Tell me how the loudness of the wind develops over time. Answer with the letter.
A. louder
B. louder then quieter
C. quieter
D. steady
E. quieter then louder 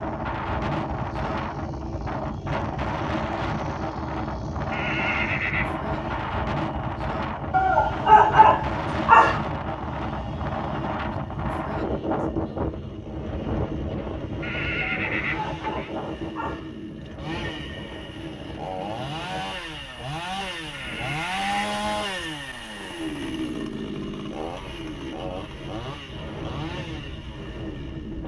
C.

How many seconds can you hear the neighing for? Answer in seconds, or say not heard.
4 s.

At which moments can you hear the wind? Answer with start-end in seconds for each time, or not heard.
0.0-28.2.